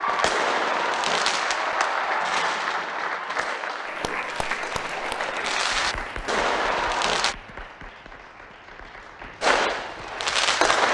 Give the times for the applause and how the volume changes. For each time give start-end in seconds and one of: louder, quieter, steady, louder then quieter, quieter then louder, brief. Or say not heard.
0.0-10.8 quieter.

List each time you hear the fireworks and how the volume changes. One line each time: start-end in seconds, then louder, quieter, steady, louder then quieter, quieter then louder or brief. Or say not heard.
0.0-7.3 quieter then louder
9.4-10.9 brief.